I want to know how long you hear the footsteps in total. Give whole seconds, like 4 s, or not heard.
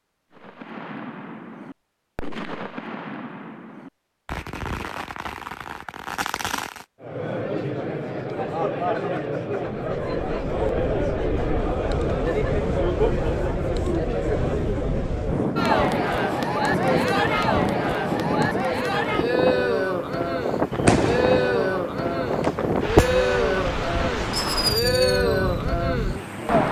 not heard.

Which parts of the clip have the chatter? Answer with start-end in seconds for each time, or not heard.
7.0-26.6.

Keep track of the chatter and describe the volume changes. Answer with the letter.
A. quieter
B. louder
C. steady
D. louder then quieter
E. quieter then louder
C.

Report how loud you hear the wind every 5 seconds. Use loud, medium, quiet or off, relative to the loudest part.
off, off, medium, loud, loud, loud.